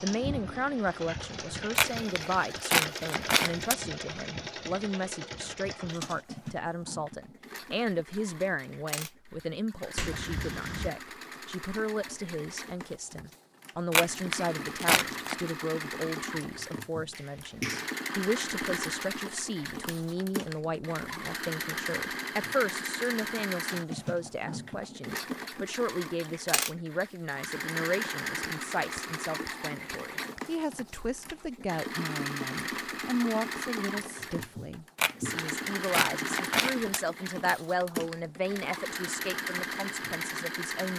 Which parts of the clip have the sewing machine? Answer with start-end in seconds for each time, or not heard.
0.0-40.9.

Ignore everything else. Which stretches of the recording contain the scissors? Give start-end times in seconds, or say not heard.
1.8-3.8, 13.9-15.5, 35.0-37.0.